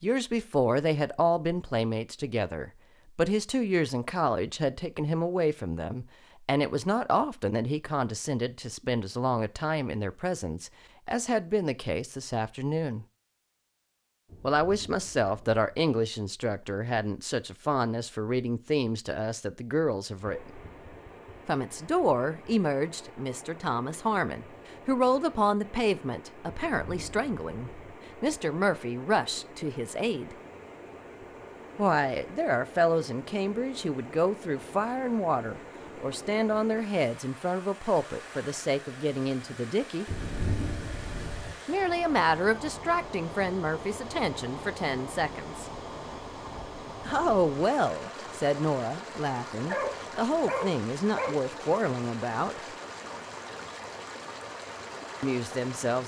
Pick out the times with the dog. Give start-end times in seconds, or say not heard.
49.6-51.4.